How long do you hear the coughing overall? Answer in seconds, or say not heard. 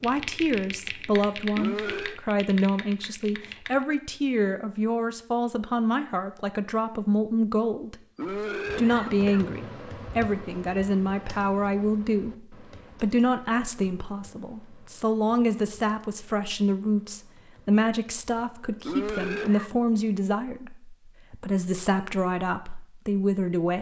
3 s.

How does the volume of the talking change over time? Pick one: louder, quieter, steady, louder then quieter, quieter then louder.
steady.